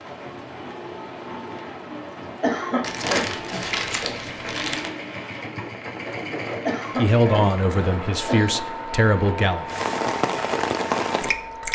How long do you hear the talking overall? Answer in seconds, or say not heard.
3 s.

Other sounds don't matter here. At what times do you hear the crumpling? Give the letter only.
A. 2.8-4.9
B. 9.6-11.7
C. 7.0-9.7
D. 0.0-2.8
A.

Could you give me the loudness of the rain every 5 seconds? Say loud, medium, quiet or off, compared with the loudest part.
quiet, medium, loud.